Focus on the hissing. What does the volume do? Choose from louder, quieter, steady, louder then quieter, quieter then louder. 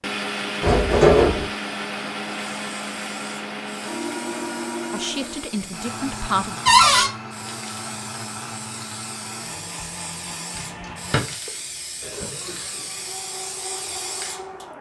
louder.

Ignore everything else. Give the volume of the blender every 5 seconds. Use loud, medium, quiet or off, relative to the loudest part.
loud, medium, medium.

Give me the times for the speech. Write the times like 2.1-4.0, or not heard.
4.9-6.6.